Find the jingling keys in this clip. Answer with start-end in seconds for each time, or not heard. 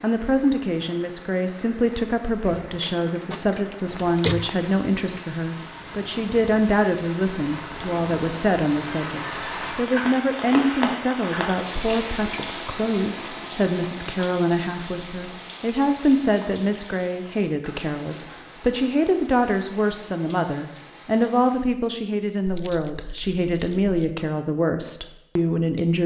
2.6-4.5, 22.4-24.1.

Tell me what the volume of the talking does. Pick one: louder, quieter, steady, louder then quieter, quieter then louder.
steady.